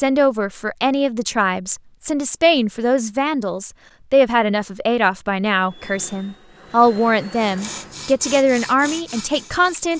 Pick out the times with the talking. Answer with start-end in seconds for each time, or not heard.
0.0-9.9.